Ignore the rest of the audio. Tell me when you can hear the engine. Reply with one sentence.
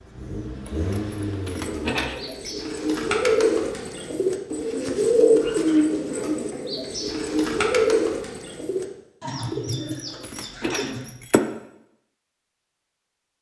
You can hear the engine from 0.0 to 1.9 s.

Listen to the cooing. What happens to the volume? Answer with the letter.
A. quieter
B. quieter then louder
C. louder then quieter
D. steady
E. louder
A.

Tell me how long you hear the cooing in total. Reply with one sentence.
You can hear the cooing for 10 seconds altogether.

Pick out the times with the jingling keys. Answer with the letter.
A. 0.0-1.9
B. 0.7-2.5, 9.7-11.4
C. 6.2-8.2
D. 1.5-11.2
B.